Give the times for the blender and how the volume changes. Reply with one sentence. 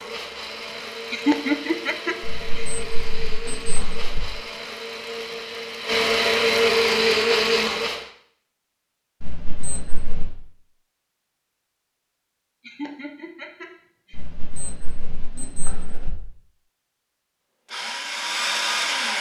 You can hear the blender from 0.0 to 8.1 s, getting louder; and briefly from 17.6 to 19.1 s.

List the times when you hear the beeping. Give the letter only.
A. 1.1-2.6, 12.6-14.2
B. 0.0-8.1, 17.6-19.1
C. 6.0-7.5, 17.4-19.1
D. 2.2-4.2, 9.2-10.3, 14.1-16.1
D.